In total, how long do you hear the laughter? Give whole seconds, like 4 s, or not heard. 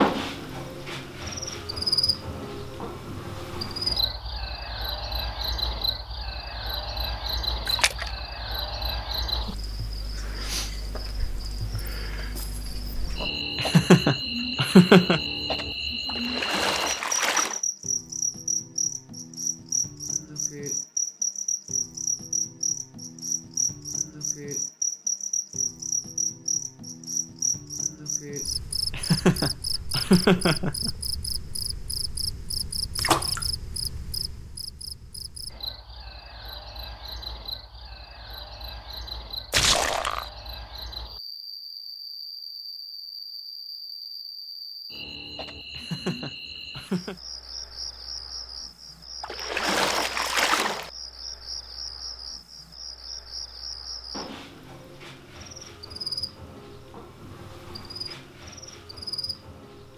5 s.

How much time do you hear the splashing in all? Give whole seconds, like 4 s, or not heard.
5 s.